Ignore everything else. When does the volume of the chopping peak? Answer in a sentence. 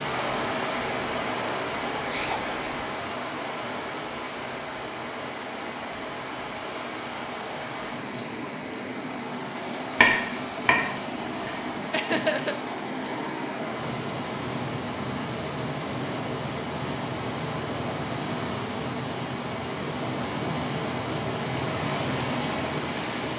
The loudest moment of the chopping is at 10 seconds.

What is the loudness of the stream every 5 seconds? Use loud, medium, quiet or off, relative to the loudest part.
loud, medium, loud, loud, loud.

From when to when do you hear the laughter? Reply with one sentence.
You can hear the laughter from 2.0 to 2.9 s and from 11.9 to 12.6 s.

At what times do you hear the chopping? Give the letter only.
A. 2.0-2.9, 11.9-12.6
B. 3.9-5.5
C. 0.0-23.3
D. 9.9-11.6
D.